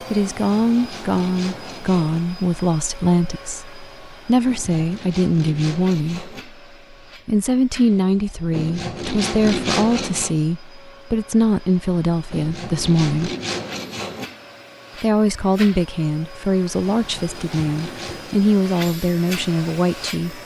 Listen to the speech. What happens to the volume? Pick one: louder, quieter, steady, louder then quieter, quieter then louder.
steady.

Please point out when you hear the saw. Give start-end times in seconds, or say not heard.
0.2-2.2, 4.5-6.5, 8.5-10.3, 12.3-14.3, 16.9-18.4.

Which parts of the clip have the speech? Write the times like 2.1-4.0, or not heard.
0.1-6.3, 7.2-13.3, 15.0-20.4.